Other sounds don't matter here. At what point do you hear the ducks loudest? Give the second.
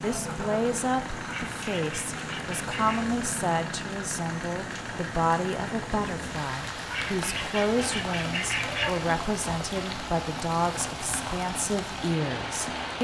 9 s.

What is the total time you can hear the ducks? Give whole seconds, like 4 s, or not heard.
4 s.